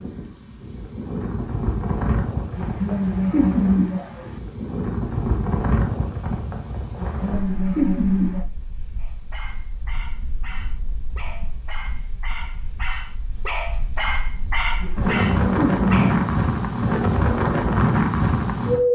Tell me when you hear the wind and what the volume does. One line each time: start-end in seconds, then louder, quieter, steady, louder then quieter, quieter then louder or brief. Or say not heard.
0.0-18.9 quieter then louder.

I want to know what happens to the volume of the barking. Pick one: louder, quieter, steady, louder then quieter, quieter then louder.
louder.